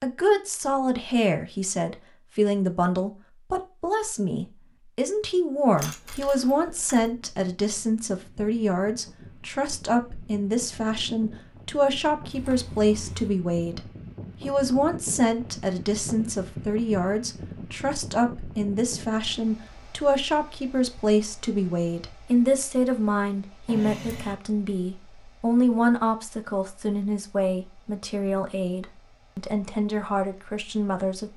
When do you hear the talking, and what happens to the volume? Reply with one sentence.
You can hear the talking from 0.0 to 31.3 s, at a steady volume.